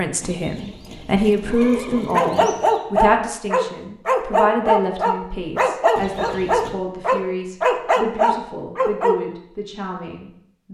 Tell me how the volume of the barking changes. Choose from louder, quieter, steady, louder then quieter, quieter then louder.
steady.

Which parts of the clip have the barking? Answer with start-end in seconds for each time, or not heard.
2.1-9.2.